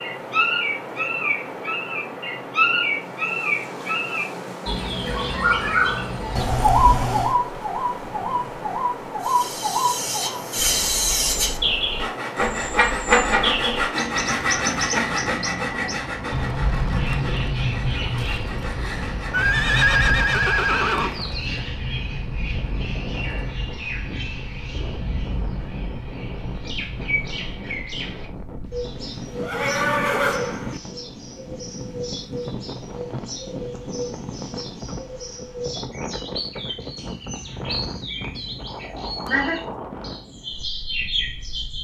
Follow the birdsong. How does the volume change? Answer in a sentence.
The loudness of the birdsong goes down.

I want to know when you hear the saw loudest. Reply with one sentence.
The loudest moment of the saw is at 13 seconds.